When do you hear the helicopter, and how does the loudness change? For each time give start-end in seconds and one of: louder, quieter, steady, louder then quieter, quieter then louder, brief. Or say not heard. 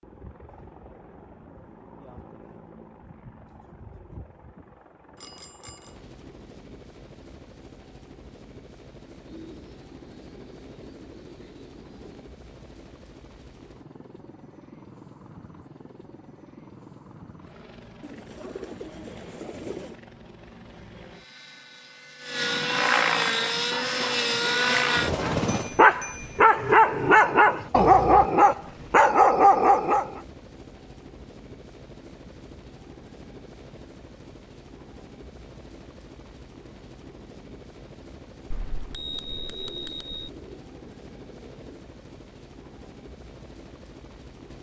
0.0-44.5 louder then quieter.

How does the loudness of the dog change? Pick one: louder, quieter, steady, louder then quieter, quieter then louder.
louder.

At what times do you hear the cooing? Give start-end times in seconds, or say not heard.
9.2-12.2, 18.0-19.9, 39.2-41.9.